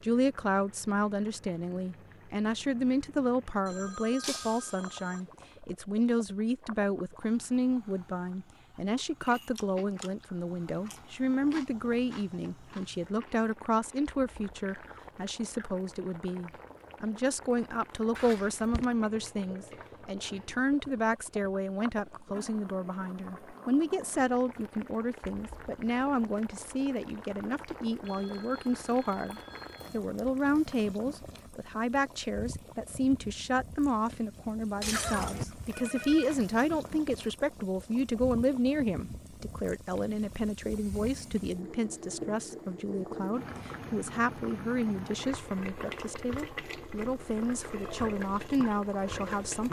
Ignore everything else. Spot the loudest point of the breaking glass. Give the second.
35 s.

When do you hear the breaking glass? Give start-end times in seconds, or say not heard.
4.2-4.8, 18.1-18.9, 34.8-36.4.